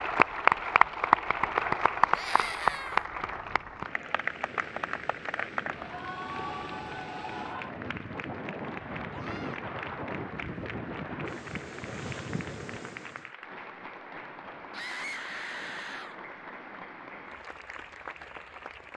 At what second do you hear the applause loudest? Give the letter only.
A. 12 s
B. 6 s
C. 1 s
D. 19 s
C.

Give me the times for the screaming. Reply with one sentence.
You can hear the screaming from 2.1 to 3.0 s, from 9.1 to 9.6 s and from 14.7 to 16.2 s.